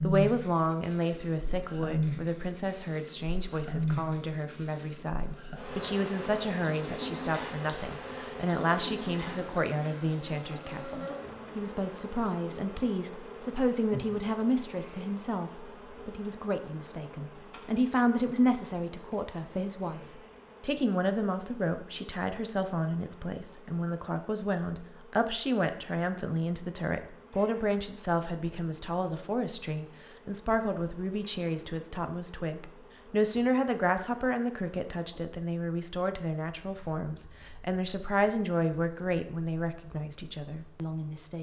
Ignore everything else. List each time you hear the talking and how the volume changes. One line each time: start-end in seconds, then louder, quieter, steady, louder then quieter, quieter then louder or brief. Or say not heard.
0.0-41.3 steady.